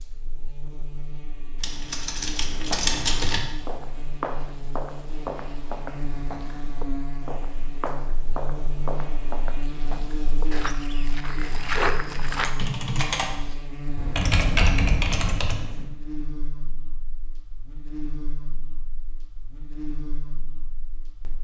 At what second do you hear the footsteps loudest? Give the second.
12 s.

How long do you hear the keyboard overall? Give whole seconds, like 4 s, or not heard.
5 s.